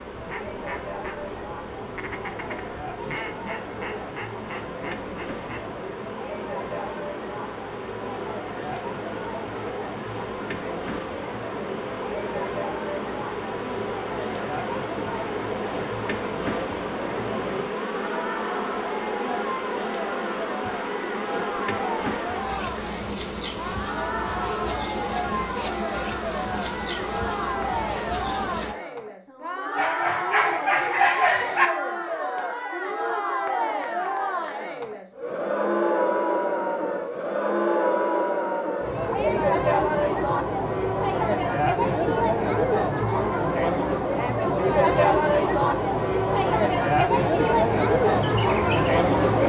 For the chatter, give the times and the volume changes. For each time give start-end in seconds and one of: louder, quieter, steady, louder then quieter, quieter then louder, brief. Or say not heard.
0.0-49.4 louder.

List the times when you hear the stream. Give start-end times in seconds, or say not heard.
not heard.